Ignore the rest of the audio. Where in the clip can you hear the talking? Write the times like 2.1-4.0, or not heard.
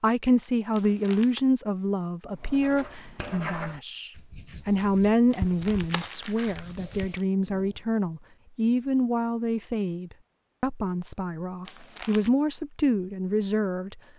0.0-14.0.